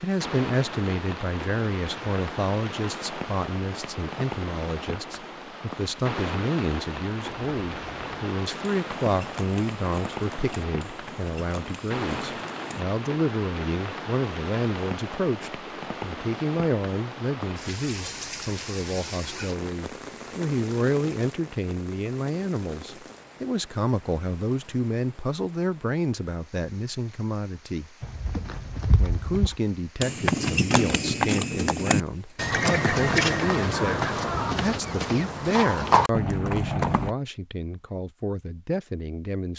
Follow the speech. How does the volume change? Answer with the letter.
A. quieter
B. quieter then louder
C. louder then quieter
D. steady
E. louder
D.